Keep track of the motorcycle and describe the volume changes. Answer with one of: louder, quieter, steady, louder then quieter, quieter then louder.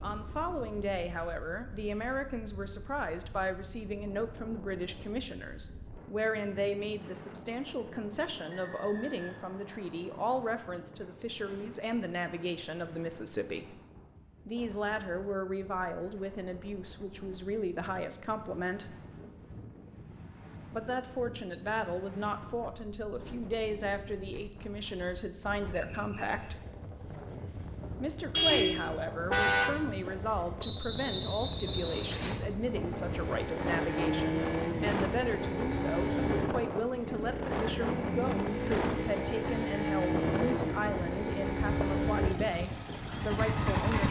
steady.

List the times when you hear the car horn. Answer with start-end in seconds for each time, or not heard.
28.4-29.8.